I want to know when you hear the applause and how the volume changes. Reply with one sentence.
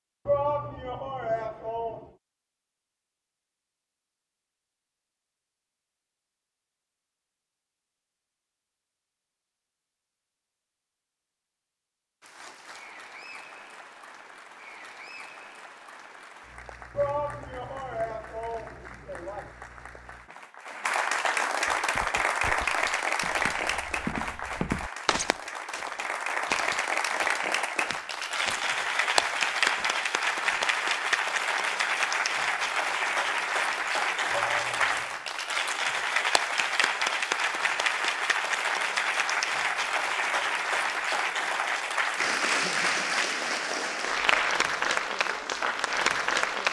The applause can be heard from 12.2 to 46.6 s, getting louder.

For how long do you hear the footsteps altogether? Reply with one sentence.
The footsteps can be heard for 9 seconds in total.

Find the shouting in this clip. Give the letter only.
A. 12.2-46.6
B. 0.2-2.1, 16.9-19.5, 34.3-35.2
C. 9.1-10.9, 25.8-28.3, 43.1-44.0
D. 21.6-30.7
B.